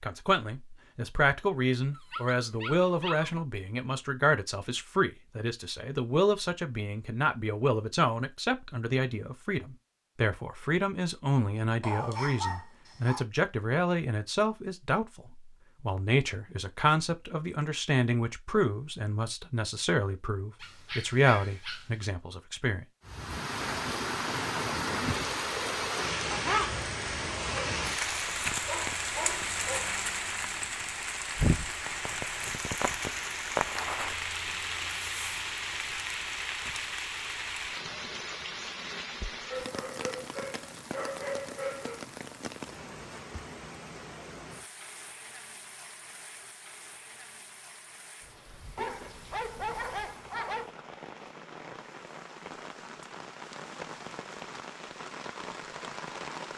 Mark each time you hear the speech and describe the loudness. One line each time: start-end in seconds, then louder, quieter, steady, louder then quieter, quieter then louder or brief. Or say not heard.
0.0-22.9 steady.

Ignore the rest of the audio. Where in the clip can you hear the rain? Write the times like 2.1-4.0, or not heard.
23.1-56.5.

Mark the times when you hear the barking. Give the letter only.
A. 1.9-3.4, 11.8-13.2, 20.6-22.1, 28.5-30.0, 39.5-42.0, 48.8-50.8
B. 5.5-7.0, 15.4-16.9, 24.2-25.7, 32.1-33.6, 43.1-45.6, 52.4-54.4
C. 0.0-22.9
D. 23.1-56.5
A.